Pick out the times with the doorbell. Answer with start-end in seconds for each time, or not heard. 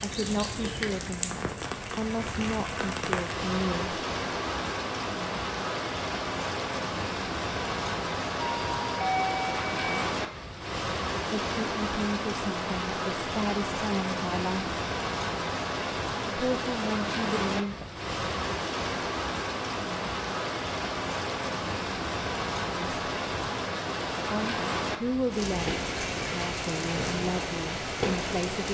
8.3-10.1.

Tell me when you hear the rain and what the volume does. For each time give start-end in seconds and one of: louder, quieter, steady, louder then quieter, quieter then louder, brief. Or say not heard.
0.0-28.6 steady.